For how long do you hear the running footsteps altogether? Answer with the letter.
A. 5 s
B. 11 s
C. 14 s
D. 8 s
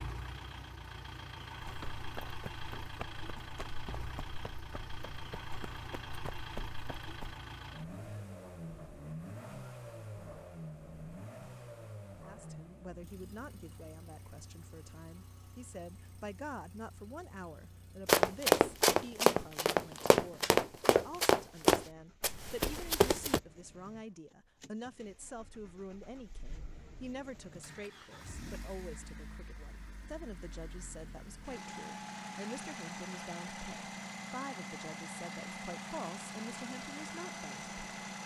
B.